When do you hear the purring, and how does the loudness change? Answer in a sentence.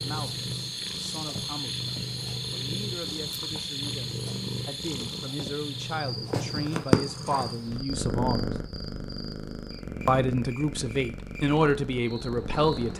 You can hear the purring from 0.0 to 12.9 s, getting louder then quieter.